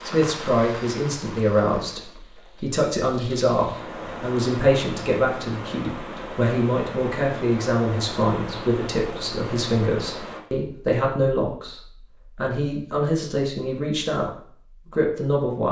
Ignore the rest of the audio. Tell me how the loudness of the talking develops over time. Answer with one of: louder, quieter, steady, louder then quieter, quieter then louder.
steady.